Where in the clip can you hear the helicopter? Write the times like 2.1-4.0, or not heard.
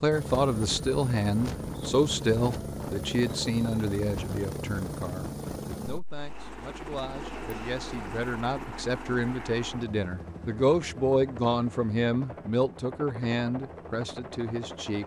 0.0-15.0.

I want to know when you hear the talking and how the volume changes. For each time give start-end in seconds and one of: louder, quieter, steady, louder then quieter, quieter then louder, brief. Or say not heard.
0.0-15.0 quieter then louder.